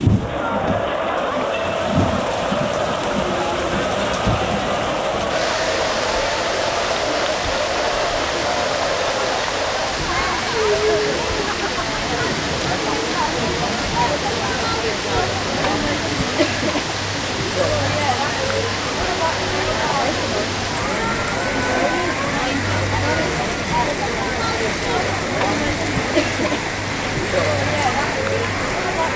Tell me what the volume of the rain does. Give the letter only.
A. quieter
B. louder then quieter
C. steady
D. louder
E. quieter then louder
C.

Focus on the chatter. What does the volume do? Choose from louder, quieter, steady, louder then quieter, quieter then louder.
steady.